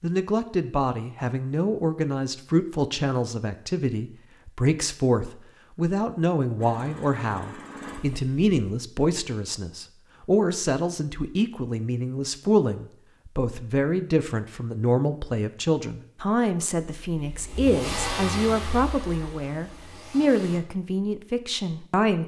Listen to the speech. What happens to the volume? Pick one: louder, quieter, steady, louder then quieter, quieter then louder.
steady.